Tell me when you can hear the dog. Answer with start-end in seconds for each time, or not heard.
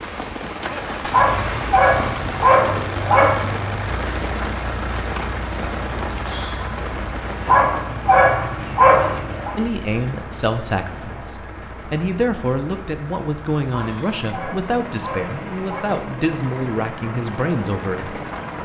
1.1-3.5, 7.5-9.5, 13.7-15.8.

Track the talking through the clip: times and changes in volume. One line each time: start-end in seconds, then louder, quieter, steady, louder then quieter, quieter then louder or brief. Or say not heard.
9.6-18.2 steady.